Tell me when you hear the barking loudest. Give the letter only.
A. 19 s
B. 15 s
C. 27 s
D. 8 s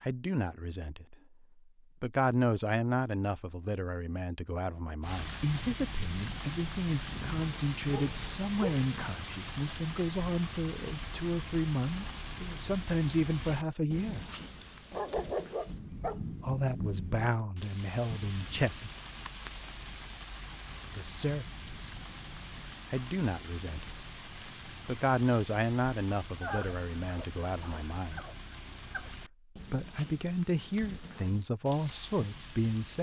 B.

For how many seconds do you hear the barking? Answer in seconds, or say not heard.
6 s.